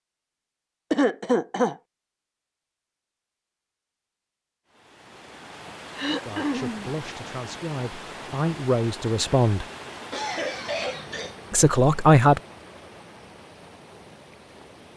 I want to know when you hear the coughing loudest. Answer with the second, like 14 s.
1 s.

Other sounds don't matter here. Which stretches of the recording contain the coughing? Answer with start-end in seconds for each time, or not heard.
0.9-1.8, 6.0-6.9, 10.1-11.4.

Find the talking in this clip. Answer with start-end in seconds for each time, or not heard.
6.2-9.7, 11.5-12.4.